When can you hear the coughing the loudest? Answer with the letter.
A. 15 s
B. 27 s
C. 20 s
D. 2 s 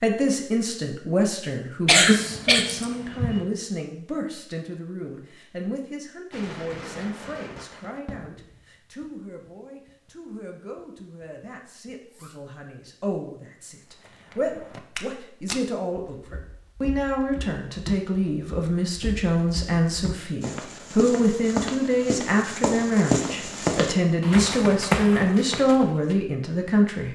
D.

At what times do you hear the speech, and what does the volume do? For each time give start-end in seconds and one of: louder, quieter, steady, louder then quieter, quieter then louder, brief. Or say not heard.
0.0-27.1 quieter then louder.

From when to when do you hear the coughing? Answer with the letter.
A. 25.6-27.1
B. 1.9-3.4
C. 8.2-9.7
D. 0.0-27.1
B.